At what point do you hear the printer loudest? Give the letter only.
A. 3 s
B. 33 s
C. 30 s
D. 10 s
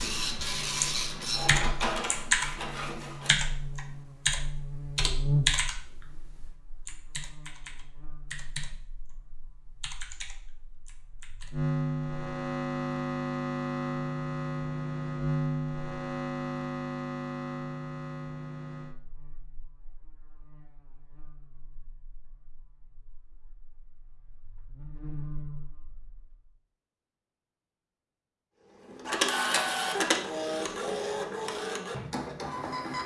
C.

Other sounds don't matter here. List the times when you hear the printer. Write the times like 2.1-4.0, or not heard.
0.0-3.4, 28.8-33.0.